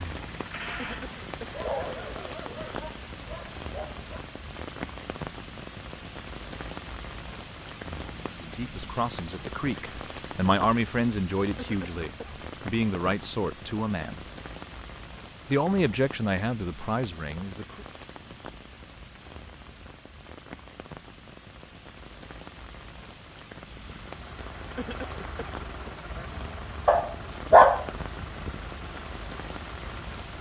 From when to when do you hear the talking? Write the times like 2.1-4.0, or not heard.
8.3-14.2, 15.4-17.9.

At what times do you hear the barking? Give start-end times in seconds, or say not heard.
1.4-4.2, 26.9-27.9.